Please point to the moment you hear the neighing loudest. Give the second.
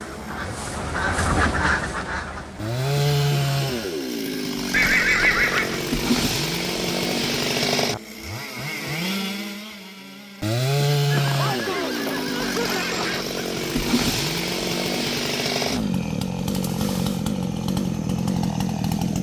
5 s.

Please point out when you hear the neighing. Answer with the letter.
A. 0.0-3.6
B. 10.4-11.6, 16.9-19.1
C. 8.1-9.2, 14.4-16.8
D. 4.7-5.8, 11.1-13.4
D.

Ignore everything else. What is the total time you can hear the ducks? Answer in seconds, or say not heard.
4 s.